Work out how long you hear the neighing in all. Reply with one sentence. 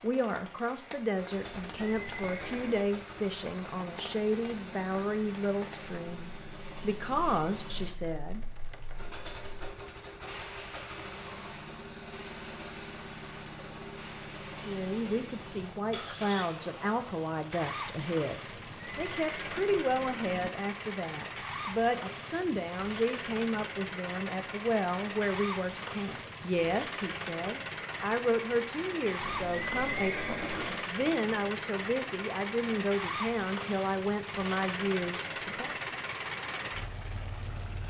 You can hear the neighing for 5 seconds altogether.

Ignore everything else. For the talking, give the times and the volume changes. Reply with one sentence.
The talking can be heard from 0.0 to 8.4 s, at a steady volume; and from 14.6 to 35.8 s, at a steady volume.